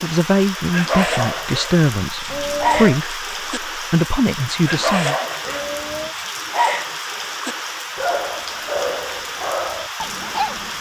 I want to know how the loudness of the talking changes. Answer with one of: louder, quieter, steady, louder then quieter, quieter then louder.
quieter then louder.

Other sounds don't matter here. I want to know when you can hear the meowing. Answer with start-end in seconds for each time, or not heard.
2.2-3.0, 5.4-6.2.